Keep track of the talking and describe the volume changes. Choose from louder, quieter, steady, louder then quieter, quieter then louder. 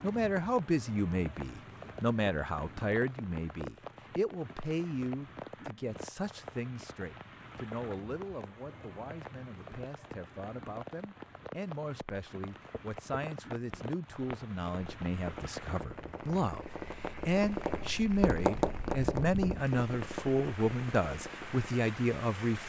quieter then louder.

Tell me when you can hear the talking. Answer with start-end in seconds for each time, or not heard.
0.0-22.6.